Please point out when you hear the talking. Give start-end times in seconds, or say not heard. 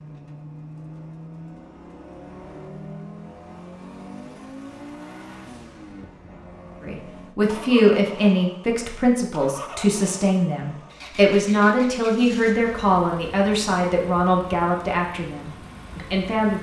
6.8-16.5.